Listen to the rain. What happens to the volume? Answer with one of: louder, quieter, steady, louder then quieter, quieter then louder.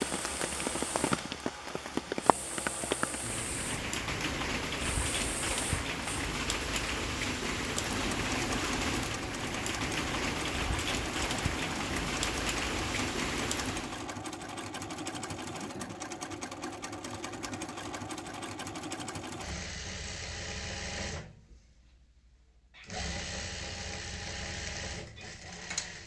steady.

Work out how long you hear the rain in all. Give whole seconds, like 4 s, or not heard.
14 s.